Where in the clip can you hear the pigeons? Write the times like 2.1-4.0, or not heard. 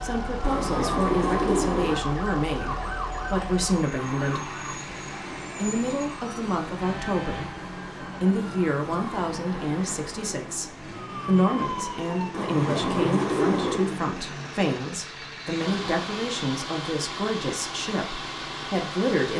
0.4-2.0, 12.3-13.9.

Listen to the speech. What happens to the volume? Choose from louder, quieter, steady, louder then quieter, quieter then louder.
steady.